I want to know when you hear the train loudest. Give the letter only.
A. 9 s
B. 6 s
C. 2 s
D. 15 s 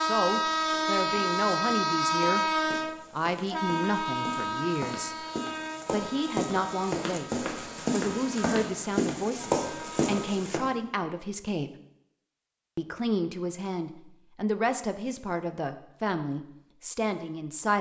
C.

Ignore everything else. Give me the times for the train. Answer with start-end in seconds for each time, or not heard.
0.0-10.2.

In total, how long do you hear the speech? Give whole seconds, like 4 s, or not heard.
15 s.